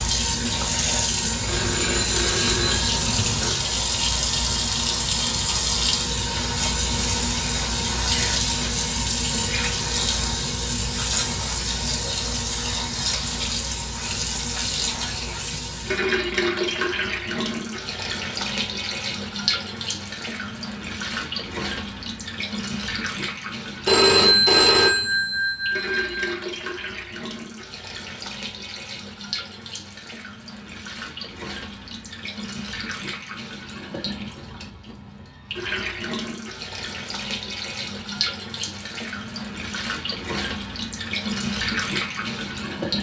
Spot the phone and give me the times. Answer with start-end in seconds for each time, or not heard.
1.4-3.6, 23.9-26.2.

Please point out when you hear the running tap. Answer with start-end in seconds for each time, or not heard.
0.0-42.9.